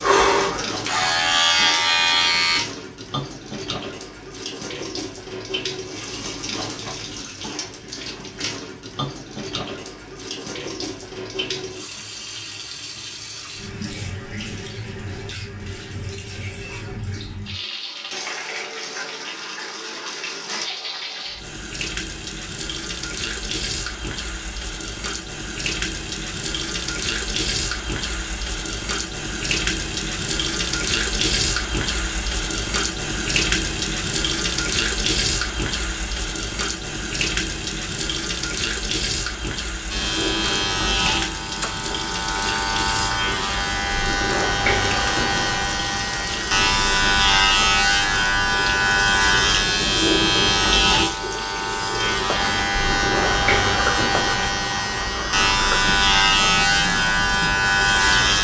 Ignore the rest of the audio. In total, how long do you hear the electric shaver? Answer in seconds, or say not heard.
21 s.